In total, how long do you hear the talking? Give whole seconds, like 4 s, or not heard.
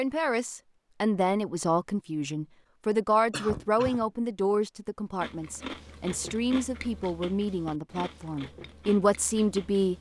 10 s.